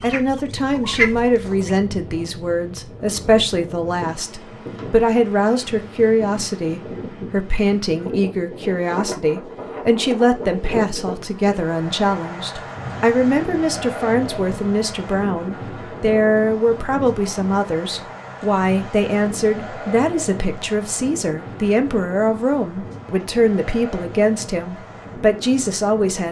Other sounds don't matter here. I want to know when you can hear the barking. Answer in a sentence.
The barking can't be heard in this clip.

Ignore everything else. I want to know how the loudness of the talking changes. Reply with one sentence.
The loudness of the talking stays about the same.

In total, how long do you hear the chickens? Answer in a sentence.
You can hear the chickens for 2 seconds altogether.